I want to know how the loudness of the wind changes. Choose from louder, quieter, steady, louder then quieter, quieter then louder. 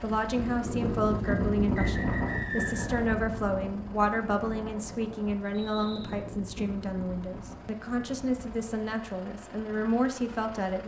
quieter.